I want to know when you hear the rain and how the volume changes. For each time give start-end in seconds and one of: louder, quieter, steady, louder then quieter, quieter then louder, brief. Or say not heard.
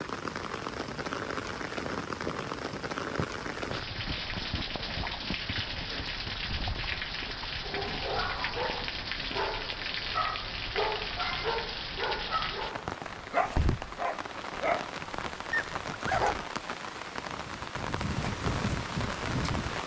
0.0-19.8 steady.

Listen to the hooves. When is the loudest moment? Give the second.
19 s.